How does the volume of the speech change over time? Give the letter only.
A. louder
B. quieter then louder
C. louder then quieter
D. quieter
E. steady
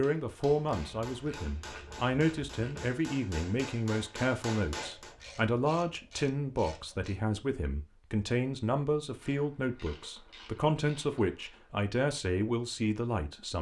E.